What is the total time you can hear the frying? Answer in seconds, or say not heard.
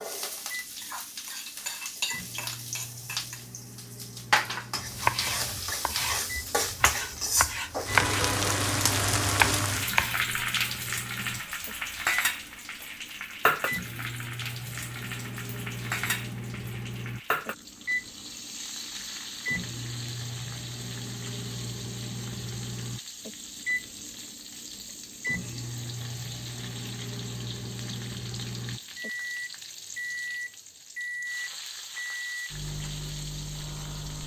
34 s.